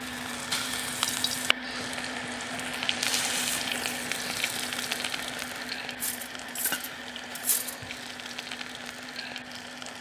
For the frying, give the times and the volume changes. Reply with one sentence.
You can hear the frying from 0.0 to 9.9 s, getting quieter.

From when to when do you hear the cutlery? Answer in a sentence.
You can hear the cutlery from 6.0 to 7.8 s.